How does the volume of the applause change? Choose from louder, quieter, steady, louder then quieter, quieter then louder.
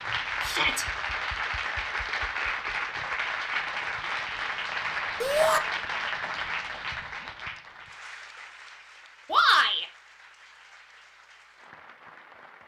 quieter.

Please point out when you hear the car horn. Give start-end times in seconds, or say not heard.
not heard.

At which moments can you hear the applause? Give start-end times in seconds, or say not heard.
0.0-12.6.